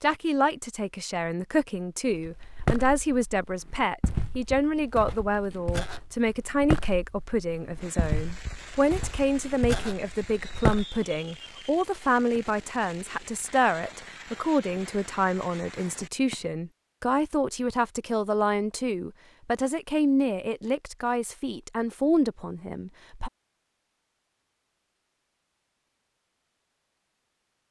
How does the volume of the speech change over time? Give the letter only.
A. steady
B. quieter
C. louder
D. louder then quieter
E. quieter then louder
A.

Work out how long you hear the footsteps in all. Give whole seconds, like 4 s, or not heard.
9 s.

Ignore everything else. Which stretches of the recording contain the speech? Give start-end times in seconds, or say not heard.
0.0-23.3.